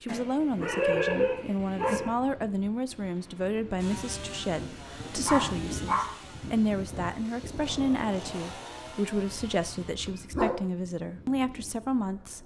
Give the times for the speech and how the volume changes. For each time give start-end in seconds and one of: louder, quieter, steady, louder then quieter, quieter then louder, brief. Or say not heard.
0.0-12.4 steady.